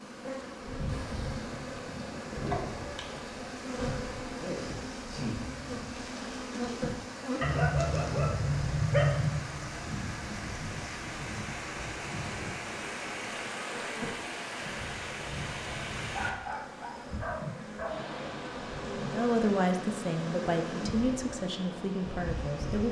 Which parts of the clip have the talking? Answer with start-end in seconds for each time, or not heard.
19.1-22.8.